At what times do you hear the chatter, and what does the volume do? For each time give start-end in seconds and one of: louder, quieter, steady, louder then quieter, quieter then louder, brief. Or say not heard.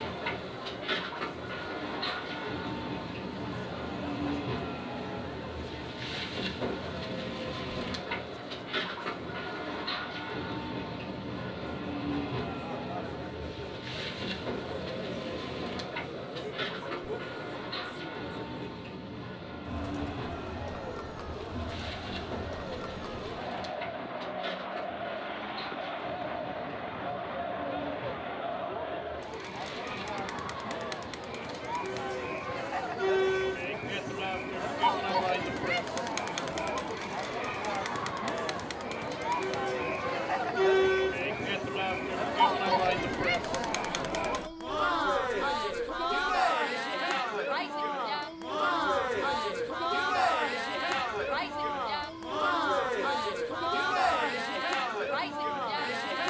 0.0-56.2 louder.